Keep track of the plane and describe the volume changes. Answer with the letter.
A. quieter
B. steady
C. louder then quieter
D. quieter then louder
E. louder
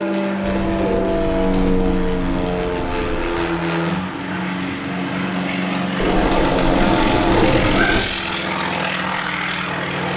B.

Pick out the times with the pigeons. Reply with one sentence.
The pigeons can be heard from 0.4 to 3.4 s and from 6.0 to 8.0 s.